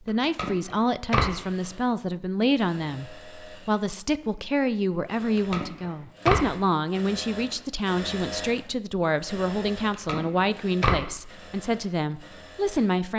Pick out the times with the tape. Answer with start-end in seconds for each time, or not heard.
0.1-1.4, 5.2-6.5, 9.8-11.1.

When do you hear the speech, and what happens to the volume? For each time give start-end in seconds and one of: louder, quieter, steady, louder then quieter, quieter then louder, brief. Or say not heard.
0.0-13.1 steady.